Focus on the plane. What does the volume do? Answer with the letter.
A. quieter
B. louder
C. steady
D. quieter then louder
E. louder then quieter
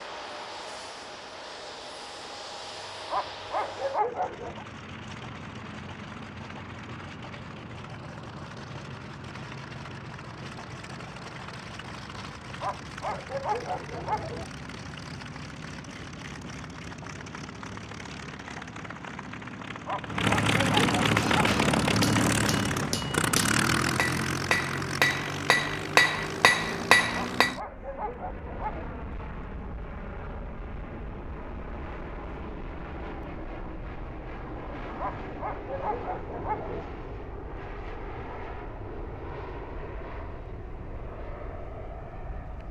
E.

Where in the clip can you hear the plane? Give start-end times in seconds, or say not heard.
0.0-42.6.